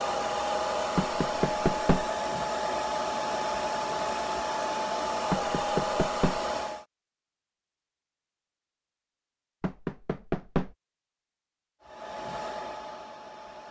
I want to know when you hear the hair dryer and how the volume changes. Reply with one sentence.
The hair dryer can be heard from 0.0 to 6.8 s, at a steady volume; and briefly from 11.8 to 13.6 s.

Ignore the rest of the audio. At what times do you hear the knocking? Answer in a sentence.
You can hear the knocking from 0.9 to 2.0 s, from 5.3 to 6.4 s and from 9.6 to 10.8 s.